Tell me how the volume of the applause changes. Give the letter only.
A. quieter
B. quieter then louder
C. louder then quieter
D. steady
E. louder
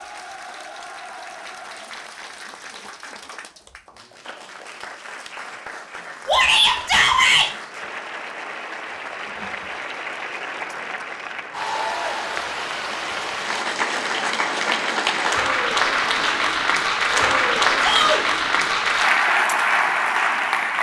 E.